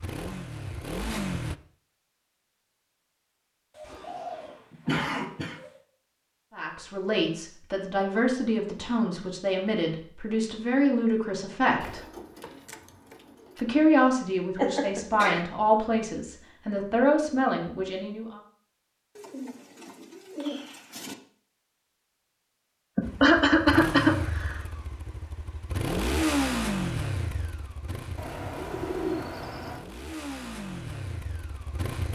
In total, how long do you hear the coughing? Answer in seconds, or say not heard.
4 s.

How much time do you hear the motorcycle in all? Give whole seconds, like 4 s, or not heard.
11 s.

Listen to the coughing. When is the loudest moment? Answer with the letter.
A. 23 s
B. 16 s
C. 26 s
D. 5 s
A.